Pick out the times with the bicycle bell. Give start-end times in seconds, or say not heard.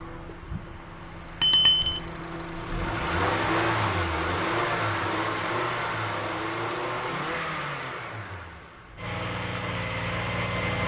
1.4-2.0.